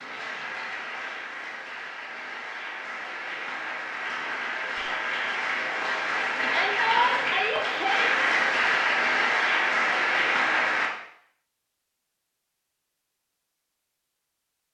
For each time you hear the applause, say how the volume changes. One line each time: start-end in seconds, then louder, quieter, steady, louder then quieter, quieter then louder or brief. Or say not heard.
0.0-10.9 louder.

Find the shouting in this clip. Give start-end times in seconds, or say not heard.
6.4-8.2.